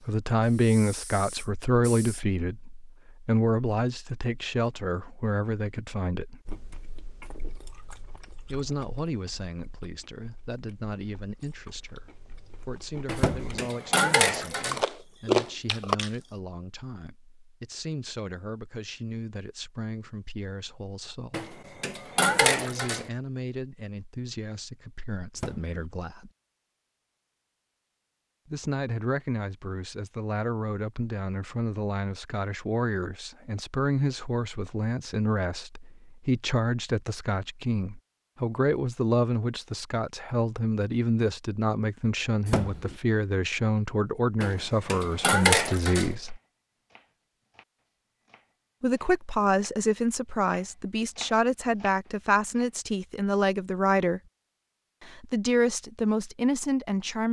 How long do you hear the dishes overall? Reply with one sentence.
You can hear the dishes for 5 seconds altogether.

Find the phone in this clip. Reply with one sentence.
The phone can be heard from 13.2 to 13.7 s, from 25.4 to 25.8 s and from 42.5 to 43.0 s.